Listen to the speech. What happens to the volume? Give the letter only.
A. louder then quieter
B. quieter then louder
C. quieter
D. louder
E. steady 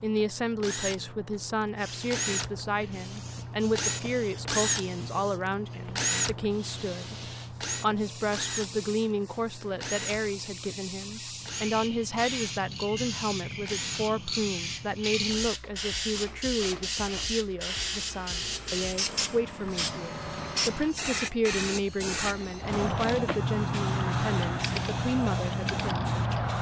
E.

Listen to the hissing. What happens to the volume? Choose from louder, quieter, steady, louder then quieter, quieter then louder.
louder.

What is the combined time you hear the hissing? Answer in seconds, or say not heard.
25 s.